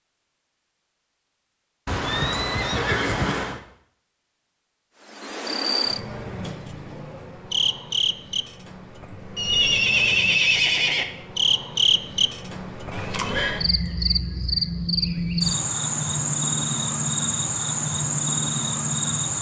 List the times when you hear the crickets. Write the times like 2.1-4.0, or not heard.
5.0-19.3.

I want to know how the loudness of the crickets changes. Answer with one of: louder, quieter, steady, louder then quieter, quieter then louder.
quieter then louder.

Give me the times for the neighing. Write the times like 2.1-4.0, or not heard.
1.9-3.6, 9.3-11.1, 12.9-13.6.